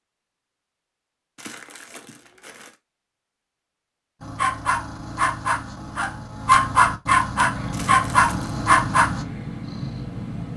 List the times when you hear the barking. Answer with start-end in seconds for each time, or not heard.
4.2-9.2.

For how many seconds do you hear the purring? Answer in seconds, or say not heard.
3 s.